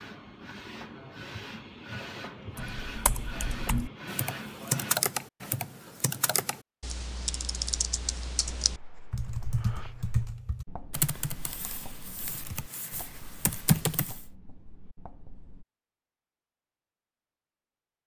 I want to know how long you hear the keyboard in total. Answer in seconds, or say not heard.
12 s.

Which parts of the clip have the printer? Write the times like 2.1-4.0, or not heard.
0.0-5.0.